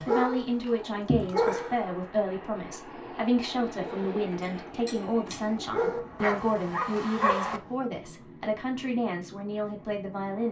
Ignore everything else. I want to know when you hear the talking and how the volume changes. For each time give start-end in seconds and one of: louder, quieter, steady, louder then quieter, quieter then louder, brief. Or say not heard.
0.0-10.4 steady.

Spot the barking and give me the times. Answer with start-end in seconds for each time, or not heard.
0.0-1.9, 3.9-7.6.